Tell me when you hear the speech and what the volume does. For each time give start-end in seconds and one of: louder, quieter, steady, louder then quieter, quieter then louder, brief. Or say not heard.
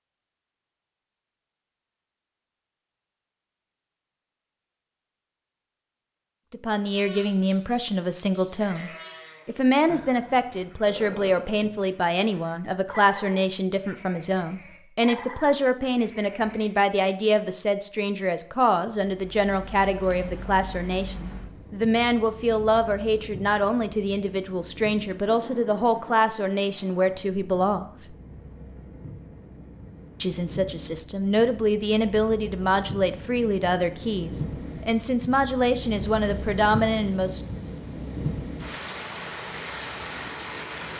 6.5-28.1 steady
30.2-37.4 steady.